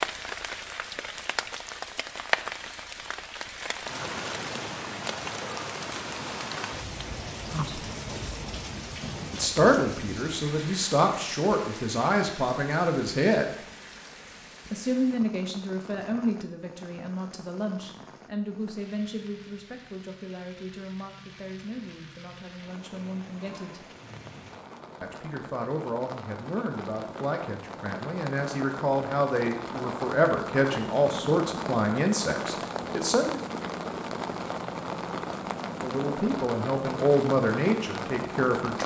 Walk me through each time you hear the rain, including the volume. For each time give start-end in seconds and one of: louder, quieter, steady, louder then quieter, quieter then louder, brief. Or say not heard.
0.0-38.8 quieter then louder.